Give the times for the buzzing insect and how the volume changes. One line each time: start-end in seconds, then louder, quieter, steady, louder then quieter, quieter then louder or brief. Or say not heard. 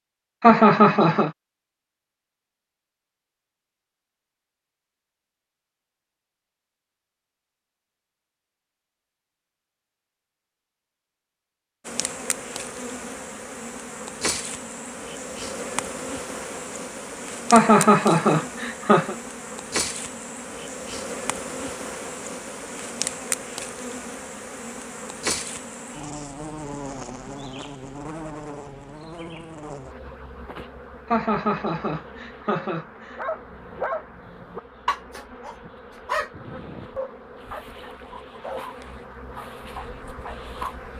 11.8-40.9 quieter.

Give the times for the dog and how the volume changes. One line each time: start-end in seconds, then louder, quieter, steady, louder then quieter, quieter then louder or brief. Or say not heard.
33.1-40.8 quieter.